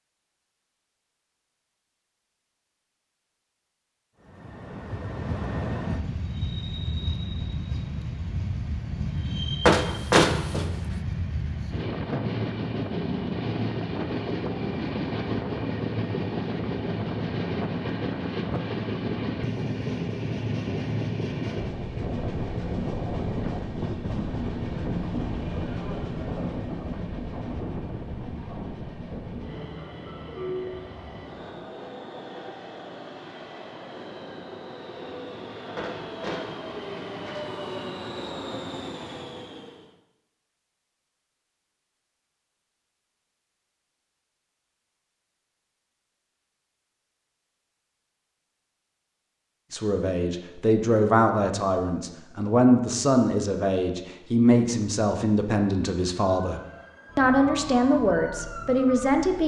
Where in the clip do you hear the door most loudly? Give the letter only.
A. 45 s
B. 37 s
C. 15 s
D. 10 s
D.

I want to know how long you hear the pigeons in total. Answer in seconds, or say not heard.
not heard.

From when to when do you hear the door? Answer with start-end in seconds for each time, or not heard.
9.7-10.8, 35.8-37.5.